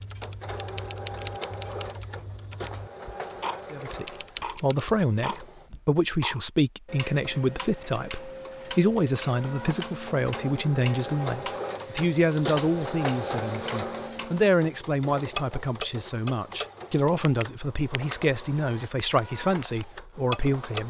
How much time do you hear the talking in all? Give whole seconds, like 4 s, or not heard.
17 s.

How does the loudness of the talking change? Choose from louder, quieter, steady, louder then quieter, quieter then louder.
steady.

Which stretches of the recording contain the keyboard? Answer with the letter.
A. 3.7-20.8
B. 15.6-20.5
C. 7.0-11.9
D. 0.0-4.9
D.